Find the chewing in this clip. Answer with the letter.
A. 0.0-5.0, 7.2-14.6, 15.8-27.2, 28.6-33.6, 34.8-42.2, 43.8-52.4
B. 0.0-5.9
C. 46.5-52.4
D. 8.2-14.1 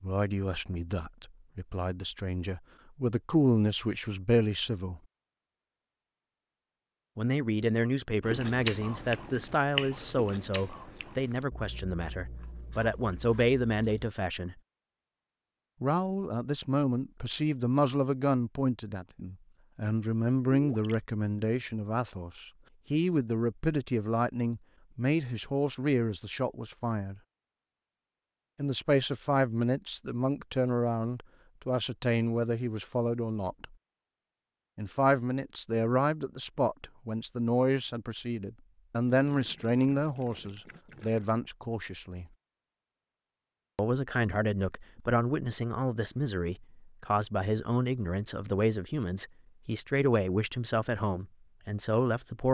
D.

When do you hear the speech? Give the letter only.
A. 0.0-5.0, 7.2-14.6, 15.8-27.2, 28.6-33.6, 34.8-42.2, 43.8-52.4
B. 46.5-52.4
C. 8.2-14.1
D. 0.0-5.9
A.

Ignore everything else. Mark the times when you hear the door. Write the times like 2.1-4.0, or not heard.
not heard.